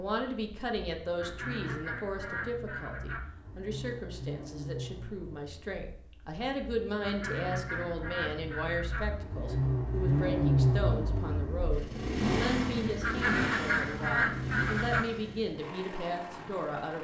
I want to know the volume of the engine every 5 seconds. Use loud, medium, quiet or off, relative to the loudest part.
quiet, medium, loud, quiet.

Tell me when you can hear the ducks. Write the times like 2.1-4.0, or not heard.
1.1-3.2, 7.0-9.0, 13.0-15.1.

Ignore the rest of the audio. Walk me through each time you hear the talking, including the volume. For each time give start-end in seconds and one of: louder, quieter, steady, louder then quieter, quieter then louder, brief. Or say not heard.
0.0-17.0 steady.